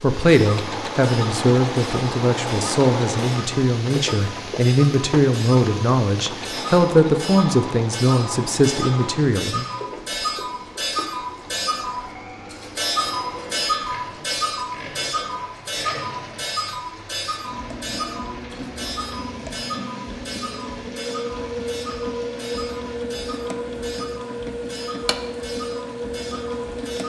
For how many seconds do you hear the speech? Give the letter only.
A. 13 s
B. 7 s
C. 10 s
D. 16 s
C.